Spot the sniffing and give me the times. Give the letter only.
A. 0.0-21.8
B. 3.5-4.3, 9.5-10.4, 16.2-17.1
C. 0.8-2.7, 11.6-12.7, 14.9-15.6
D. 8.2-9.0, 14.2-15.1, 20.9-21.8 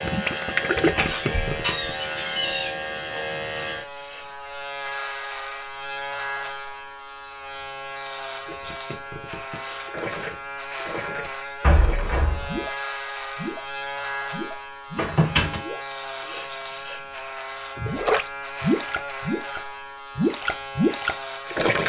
B.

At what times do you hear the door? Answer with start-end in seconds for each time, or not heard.
0.8-2.7, 11.6-12.7, 14.9-15.6.